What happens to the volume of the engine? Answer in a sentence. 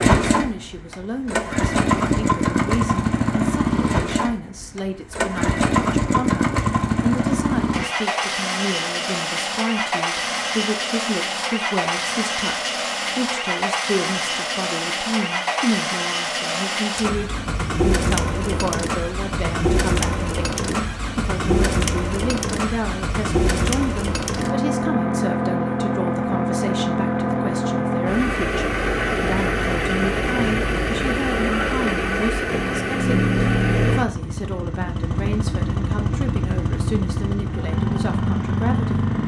The volume of the engine stays about the same.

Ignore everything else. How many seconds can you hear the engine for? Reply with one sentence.
The engine can be heard for 39 seconds in total.